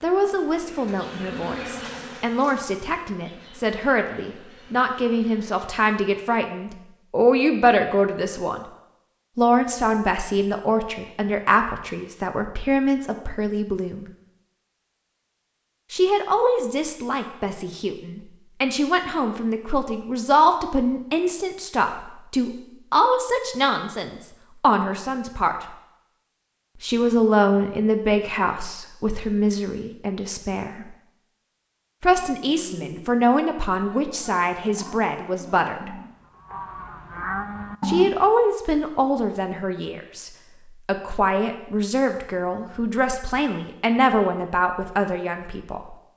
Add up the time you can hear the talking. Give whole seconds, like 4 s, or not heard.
39 s.